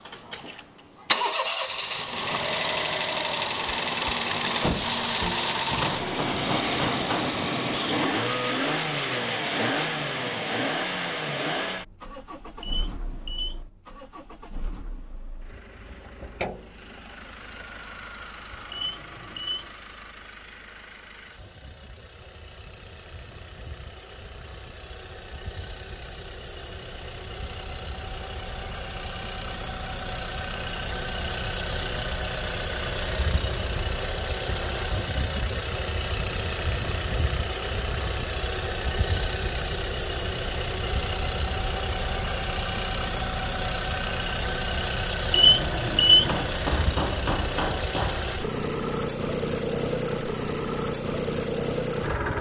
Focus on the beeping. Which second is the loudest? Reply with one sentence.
The volume of the beeping peaks at 46 seconds.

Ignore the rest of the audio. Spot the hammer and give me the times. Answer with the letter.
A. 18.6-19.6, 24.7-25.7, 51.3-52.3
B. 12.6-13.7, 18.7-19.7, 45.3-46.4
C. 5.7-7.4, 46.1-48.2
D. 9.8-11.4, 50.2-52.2
C.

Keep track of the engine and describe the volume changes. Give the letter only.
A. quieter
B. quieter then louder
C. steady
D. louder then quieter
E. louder
B.